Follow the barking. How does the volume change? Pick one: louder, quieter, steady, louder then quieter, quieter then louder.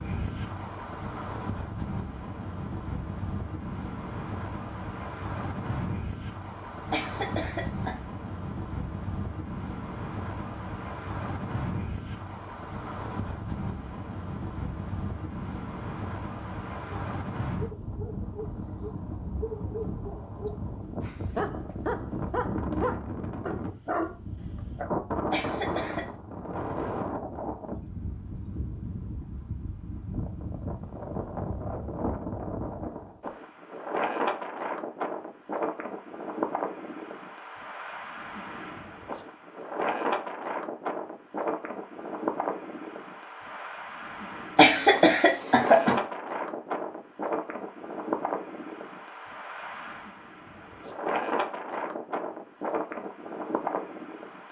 louder.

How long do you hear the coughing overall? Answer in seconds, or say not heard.
3 s.